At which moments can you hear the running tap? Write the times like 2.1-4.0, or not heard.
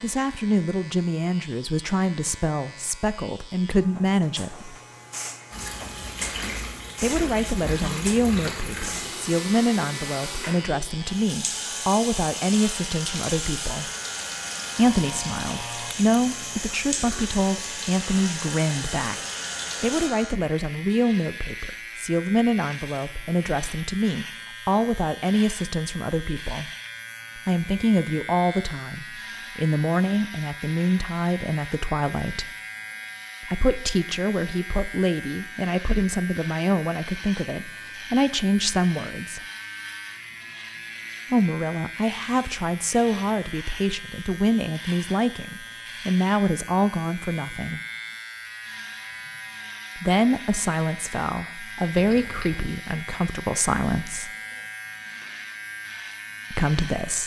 5.5-20.1.